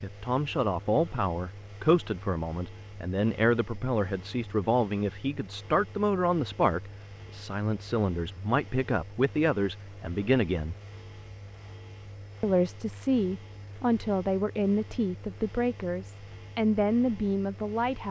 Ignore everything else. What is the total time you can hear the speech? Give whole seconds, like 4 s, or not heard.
16 s.